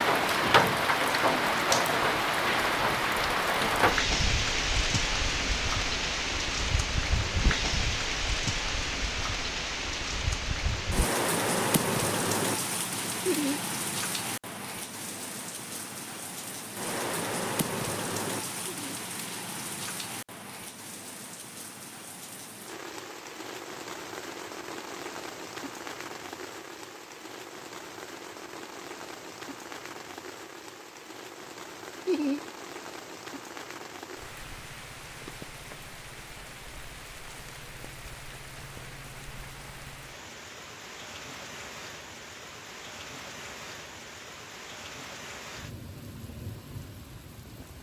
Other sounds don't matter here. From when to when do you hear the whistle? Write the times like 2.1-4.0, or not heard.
not heard.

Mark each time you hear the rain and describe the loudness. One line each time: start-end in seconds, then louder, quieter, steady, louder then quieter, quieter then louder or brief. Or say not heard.
0.0-47.7 quieter.